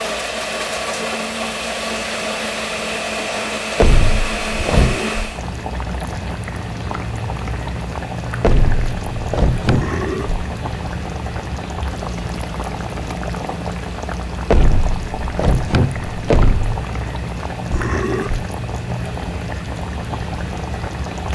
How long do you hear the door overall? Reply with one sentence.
The door can be heard for 5 seconds in total.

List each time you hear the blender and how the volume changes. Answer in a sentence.
The blender can be heard from 0.0 to 21.3 s, getting quieter.